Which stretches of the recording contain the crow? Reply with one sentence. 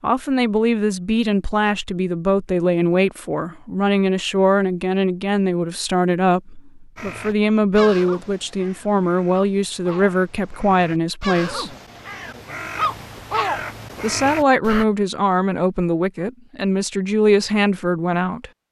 You can hear the crow from 7.0 to 14.8 s.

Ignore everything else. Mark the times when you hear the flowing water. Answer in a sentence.
You can't hear the flowing water here.